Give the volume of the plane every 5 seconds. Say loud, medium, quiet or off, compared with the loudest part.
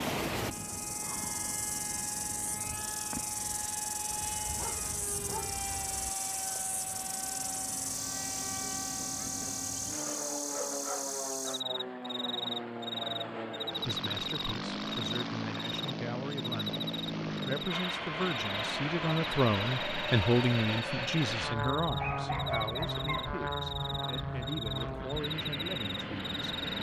medium, medium, loud, loud, loud, loud.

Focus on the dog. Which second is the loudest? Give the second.
22 s.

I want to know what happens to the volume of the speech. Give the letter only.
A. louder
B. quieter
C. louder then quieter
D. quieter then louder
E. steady
C.